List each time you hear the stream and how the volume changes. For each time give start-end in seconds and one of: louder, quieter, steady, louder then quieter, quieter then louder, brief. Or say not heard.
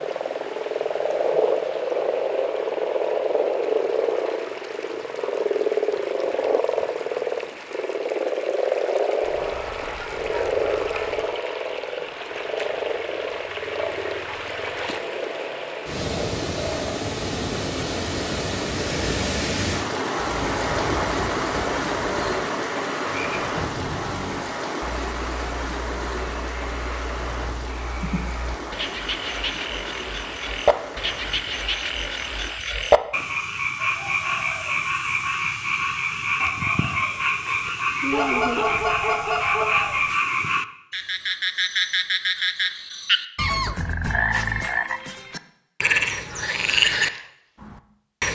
0.0-32.6 louder then quieter.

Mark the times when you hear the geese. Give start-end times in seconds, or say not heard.
9.2-11.2, 20.1-22.4, 38.1-40.0.